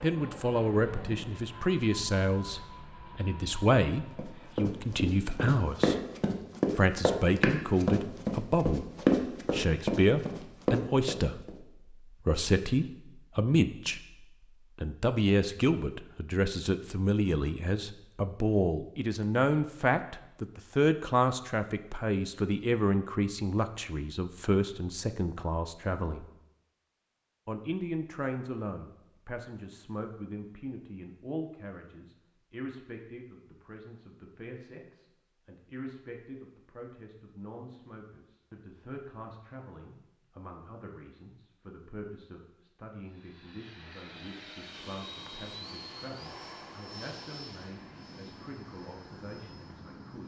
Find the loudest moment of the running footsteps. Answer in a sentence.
The loudest moment of the running footsteps is at 9 seconds.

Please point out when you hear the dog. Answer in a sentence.
The dog can't be heard in this clip.